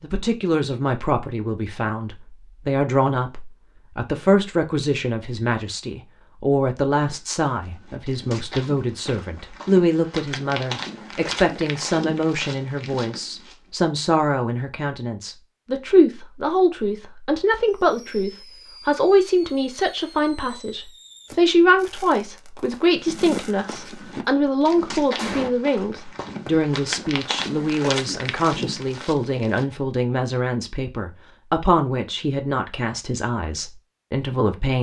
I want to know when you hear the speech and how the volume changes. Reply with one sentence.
You can hear the speech from 0.0 to 34.7 s, at a steady volume.